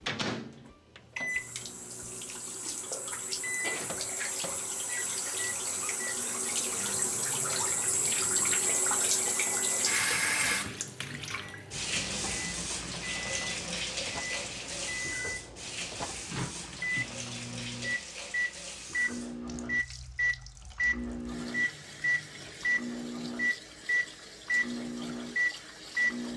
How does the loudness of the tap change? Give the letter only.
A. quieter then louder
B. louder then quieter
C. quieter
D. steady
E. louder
B.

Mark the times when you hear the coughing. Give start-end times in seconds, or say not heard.
not heard.